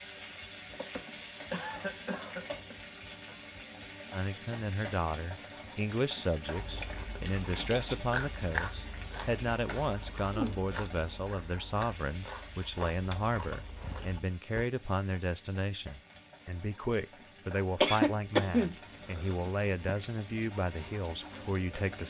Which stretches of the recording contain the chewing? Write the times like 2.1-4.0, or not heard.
6.5-14.7.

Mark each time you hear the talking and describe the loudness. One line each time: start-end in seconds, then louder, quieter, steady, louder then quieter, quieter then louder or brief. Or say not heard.
4.1-22.0 steady.